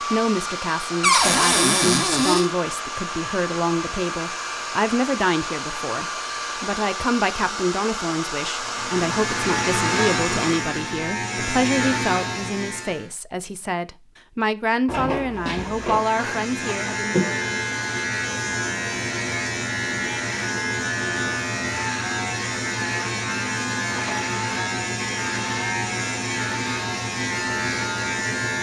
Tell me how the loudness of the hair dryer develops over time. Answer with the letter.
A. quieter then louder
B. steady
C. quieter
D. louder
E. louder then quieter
B.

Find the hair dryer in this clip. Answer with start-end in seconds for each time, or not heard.
0.0-10.7.